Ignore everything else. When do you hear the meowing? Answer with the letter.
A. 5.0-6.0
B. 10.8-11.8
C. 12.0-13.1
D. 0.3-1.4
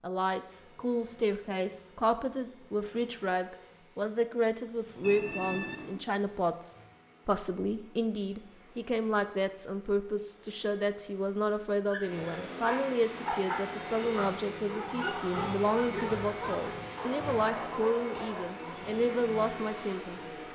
A.